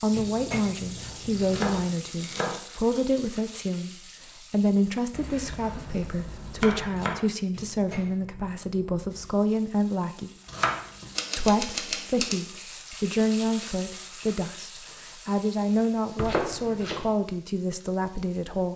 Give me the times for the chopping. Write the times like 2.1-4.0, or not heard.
0.9-2.6, 5.1-7.2, 10.4-12.3, 16.2-17.1.